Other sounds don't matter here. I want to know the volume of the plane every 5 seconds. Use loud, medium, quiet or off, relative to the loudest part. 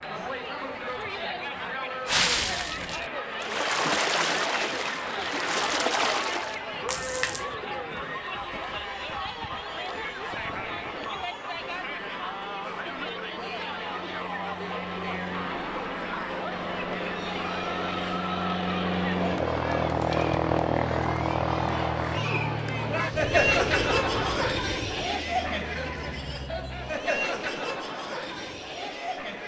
quiet, quiet, quiet, loud, loud, quiet.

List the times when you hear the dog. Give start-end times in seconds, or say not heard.
not heard.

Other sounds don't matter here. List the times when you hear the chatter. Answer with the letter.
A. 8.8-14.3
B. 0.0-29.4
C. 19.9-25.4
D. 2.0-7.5
B.